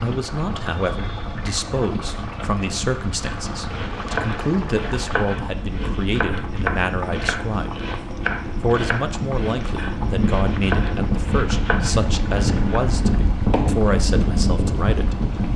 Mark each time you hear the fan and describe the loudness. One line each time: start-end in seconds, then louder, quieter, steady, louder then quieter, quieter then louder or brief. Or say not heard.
0.1-15.5 louder.